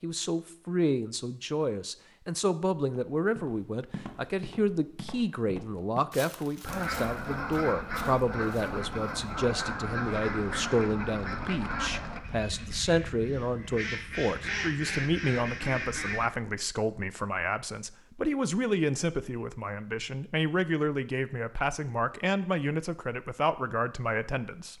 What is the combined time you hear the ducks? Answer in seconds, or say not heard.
10 s.